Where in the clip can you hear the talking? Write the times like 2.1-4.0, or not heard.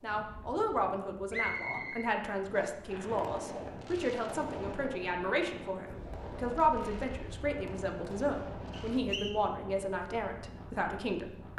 0.0-11.5.